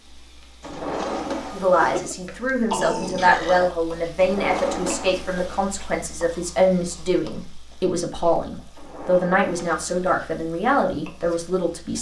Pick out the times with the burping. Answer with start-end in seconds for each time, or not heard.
1.8-3.8.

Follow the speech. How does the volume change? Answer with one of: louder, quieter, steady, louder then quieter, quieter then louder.
steady.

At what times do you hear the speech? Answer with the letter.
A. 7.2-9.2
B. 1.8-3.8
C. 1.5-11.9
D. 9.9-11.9
C.